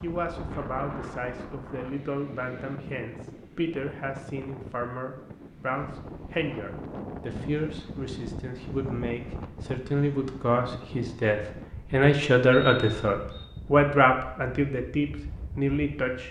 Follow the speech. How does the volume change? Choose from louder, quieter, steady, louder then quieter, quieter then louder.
louder.